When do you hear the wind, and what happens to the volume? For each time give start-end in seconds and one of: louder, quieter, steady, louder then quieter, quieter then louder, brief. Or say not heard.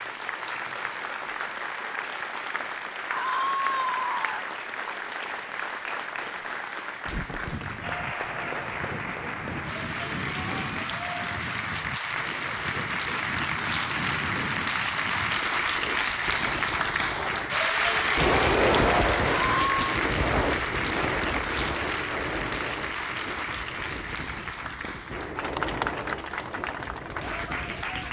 7.0-28.0 louder then quieter.